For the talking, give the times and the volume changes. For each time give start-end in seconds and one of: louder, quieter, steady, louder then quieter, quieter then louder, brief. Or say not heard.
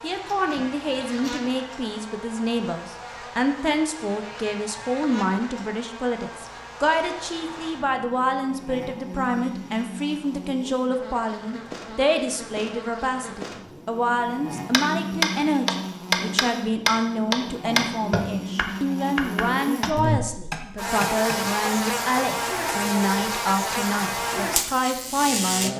0.0-25.7 steady.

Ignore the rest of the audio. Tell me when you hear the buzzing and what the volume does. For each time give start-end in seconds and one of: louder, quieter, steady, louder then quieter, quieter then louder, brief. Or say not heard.
0.0-25.7 louder.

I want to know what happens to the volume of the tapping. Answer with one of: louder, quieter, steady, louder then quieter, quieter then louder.
quieter.